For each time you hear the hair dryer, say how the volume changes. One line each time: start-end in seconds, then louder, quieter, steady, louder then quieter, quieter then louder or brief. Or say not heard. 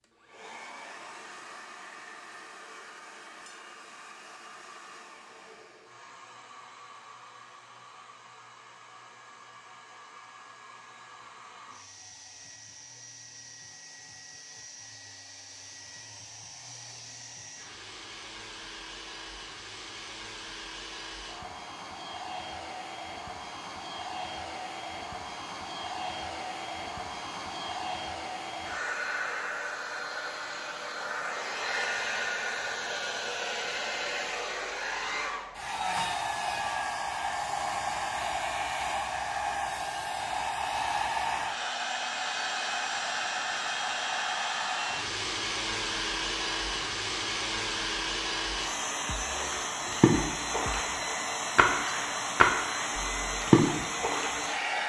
0.0-54.8 louder.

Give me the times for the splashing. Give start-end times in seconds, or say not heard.
49.1-50.9, 51.5-54.4.